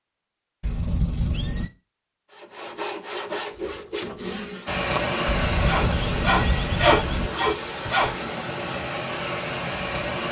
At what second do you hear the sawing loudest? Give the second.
7 s.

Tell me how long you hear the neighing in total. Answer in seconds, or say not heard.
3 s.